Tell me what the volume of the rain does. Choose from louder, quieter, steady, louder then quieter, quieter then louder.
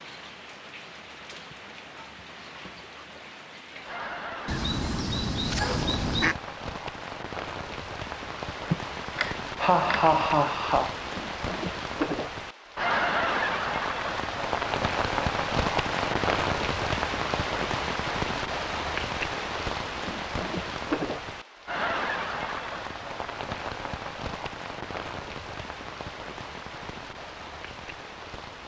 louder then quieter.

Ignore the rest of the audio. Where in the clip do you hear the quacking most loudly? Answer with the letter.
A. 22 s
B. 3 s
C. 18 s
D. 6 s
D.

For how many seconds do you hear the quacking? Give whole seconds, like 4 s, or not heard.
2 s.